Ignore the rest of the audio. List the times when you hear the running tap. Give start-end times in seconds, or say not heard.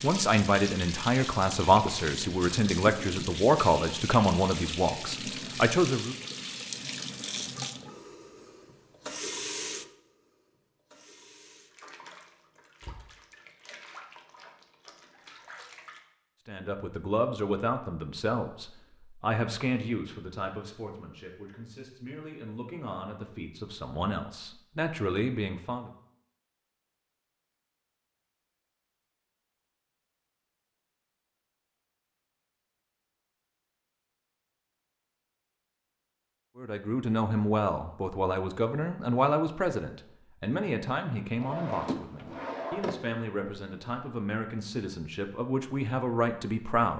0.0-16.0.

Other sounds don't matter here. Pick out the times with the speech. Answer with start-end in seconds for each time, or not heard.
0.0-6.2, 16.4-25.9, 36.5-46.9.